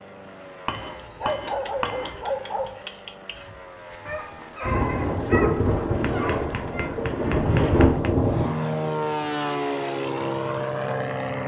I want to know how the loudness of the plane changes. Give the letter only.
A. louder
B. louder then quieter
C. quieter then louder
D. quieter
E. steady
A.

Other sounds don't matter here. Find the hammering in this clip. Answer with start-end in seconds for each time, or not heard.
0.7-2.4, 6.0-8.1.